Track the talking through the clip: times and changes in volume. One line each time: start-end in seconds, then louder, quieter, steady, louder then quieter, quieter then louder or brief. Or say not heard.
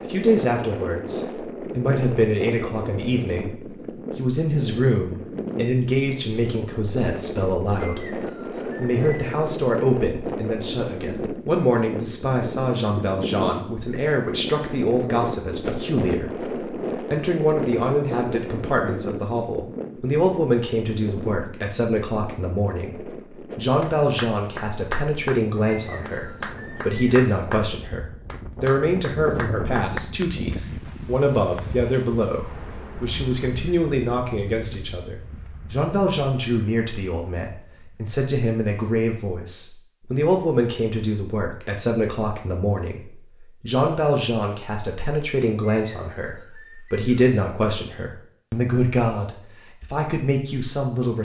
0.1-51.1 steady.